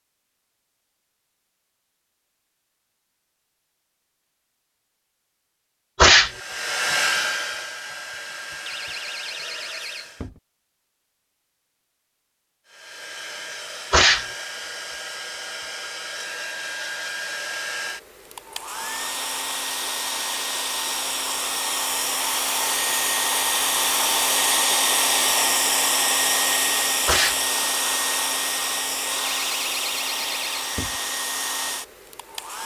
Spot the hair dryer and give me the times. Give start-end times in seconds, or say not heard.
6.1-10.3, 12.7-32.6.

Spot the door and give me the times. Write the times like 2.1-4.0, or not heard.
8.7-10.4, 29.2-31.0.